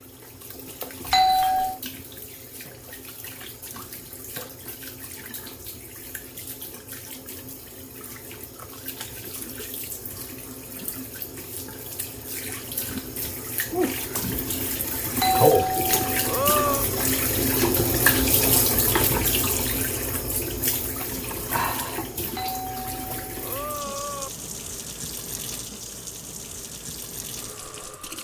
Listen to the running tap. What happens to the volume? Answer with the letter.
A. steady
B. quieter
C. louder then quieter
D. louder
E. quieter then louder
C.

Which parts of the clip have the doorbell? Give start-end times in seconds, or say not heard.
1.1-1.8, 15.2-16.9, 22.4-24.3.